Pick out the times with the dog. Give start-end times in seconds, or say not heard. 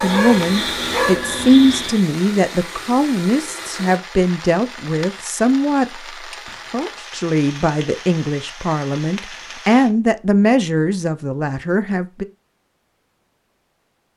0.0-2.0.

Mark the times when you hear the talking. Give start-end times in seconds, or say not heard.
0.0-12.2.